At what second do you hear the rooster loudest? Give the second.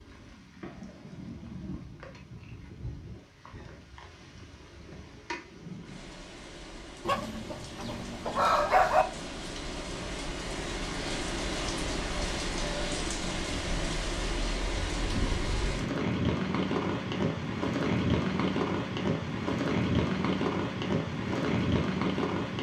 9 s.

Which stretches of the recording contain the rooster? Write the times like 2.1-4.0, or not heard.
7.0-9.1.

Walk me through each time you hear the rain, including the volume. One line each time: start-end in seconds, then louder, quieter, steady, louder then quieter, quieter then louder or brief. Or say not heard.
0.0-22.5 louder.